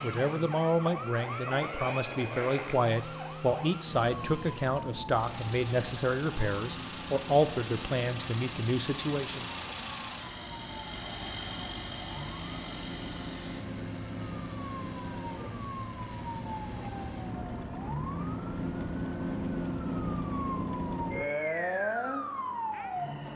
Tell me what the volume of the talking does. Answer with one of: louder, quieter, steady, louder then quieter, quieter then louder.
steady.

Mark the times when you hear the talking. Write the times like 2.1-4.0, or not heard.
0.0-9.5.